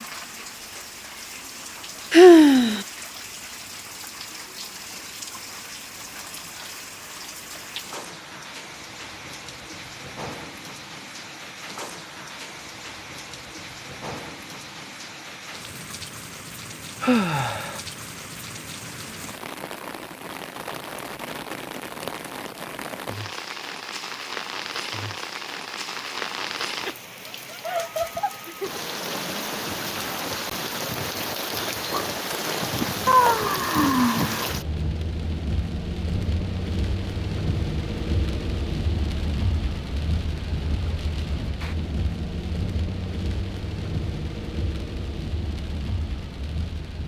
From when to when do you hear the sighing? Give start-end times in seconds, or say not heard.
2.1-2.8, 17.0-17.8, 32.6-34.5.